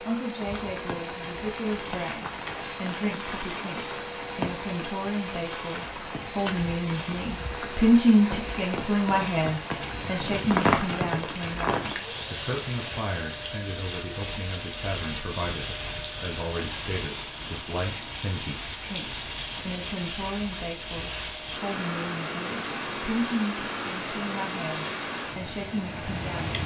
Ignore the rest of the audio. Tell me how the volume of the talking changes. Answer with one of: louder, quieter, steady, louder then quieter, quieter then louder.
louder then quieter.